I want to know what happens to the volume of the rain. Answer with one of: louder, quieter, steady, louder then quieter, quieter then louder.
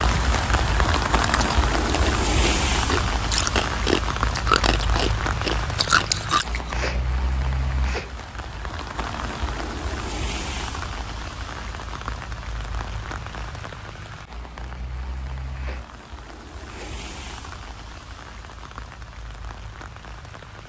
quieter.